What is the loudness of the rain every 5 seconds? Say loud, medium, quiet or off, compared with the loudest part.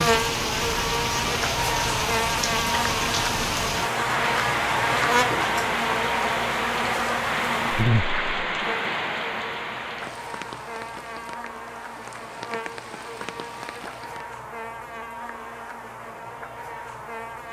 loud, loud, quiet, off.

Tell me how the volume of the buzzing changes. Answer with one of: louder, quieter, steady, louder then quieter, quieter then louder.
quieter.